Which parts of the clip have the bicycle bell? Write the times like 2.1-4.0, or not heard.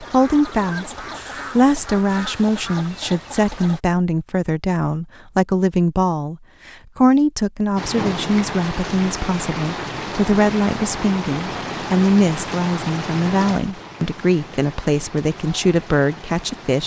not heard.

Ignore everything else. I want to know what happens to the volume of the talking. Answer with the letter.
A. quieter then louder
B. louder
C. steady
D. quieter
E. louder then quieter
C.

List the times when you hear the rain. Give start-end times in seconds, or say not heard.
7.8-16.8.